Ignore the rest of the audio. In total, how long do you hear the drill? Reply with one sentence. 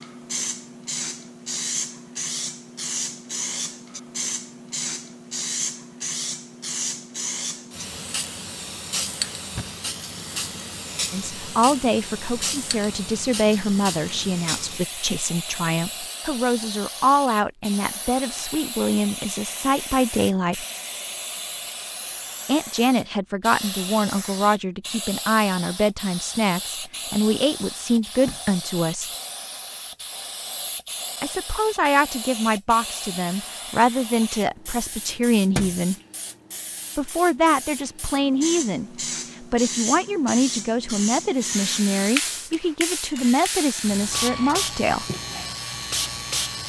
You can hear the drill for 5 seconds altogether.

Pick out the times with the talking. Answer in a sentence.
The talking can be heard from 11.1 to 20.6 s, from 22.4 to 29.1 s, from 31.2 to 36.0 s and from 37.0 to 45.0 s.